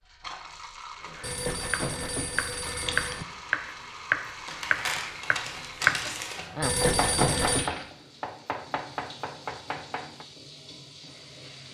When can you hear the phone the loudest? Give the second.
7 s.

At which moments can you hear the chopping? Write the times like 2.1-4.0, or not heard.
1.1-10.2.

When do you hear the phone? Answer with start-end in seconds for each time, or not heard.
1.2-3.2, 6.6-7.7.